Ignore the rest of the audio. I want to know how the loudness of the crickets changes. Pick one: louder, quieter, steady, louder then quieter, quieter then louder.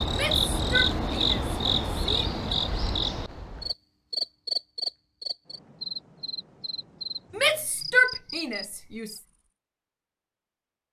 quieter.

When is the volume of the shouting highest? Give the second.
8 s.